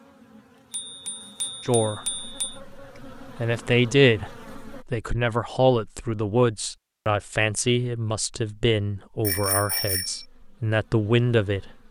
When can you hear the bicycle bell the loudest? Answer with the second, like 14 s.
10 s.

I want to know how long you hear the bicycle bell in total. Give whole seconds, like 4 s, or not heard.
3 s.